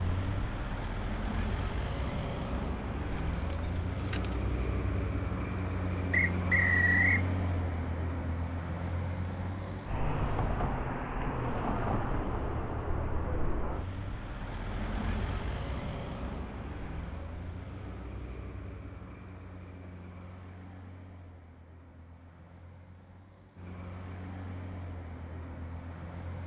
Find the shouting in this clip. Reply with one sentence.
You can't hear the shouting here.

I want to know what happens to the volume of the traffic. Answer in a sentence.
The loudness of the traffic goes down.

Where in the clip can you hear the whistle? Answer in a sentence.
You can hear the whistle from 6.1 to 7.2 s.